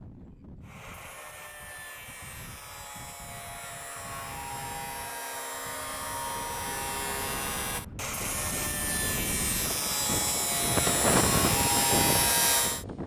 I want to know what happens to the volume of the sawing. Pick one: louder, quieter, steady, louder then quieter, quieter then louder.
louder.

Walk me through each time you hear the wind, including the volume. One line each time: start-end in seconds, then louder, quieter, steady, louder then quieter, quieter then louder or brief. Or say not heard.
0.0-13.0 louder.